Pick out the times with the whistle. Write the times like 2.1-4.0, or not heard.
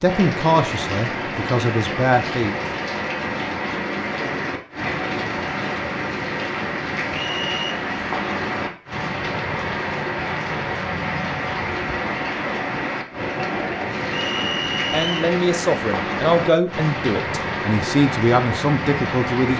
7.1-7.8, 14.1-15.2.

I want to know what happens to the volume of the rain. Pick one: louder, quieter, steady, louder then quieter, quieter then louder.
steady.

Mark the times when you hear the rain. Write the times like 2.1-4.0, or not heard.
0.0-19.5.